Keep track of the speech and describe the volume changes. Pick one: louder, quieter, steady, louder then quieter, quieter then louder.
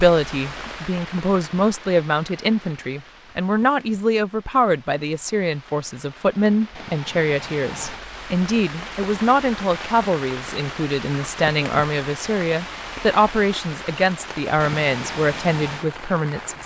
steady.